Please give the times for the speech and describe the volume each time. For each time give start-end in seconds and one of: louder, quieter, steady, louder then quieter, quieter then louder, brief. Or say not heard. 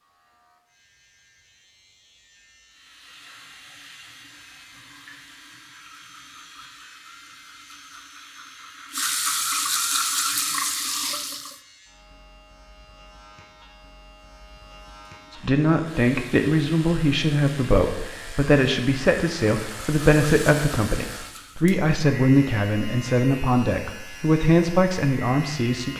15.3-25.9 steady.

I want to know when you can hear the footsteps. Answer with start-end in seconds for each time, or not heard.
not heard.